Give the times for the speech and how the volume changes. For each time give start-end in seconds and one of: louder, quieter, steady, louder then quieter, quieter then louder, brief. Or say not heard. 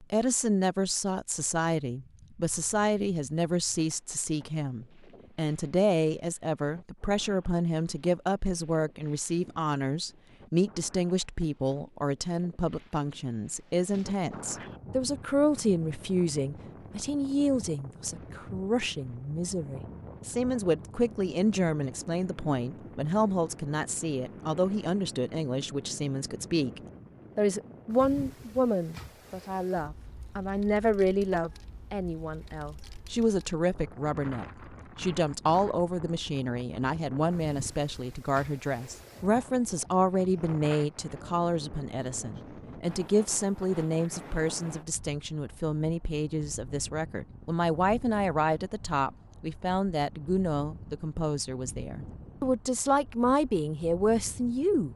0.0-54.9 steady.